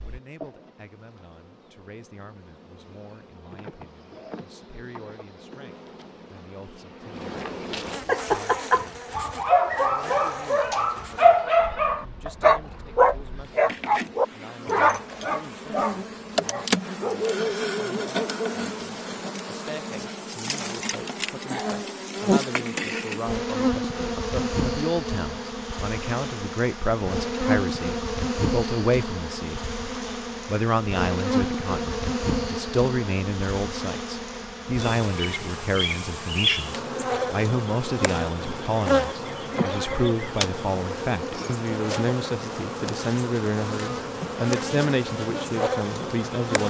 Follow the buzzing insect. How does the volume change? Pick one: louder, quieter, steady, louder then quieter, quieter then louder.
louder.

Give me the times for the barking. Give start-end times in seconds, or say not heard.
8.1-18.6.